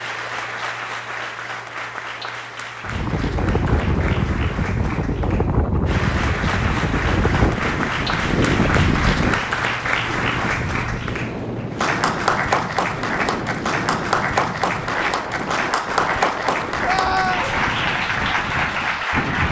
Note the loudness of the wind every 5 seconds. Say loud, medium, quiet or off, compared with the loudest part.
loud, loud, medium, medium.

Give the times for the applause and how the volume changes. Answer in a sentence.
You can hear the applause from 0.0 to 19.4 s, getting louder.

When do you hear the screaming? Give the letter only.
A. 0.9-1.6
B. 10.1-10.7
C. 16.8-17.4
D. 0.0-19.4
C.